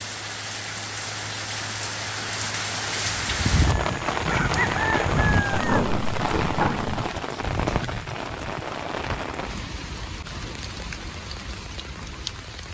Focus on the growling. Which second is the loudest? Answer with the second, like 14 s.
6 s.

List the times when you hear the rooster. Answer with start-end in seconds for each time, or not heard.
3.2-5.9.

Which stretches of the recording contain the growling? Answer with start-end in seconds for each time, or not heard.
5.5-7.0.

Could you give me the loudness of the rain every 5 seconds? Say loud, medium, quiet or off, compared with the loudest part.
loud, loud, medium.